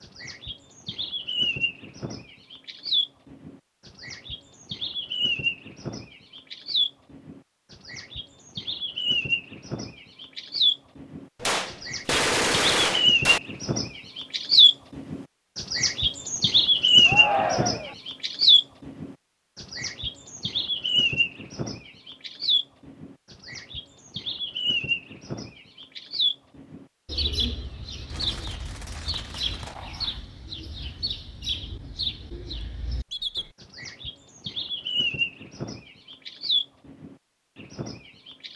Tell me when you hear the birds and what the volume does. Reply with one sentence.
You can hear the birds from 0.0 to 38.5 s, getting louder then quieter.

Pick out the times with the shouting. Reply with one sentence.
The shouting can be heard from 17.1 to 17.9 s.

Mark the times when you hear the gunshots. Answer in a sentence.
The gunshots can be heard from 11.4 to 13.4 s and from 28.1 to 29.9 s.